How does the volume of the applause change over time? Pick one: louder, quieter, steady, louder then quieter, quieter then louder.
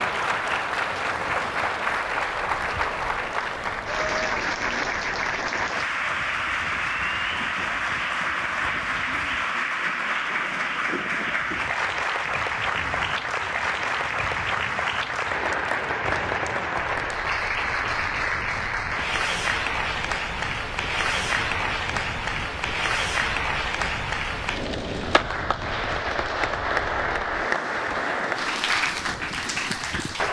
steady.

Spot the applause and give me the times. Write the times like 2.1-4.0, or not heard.
0.0-30.2.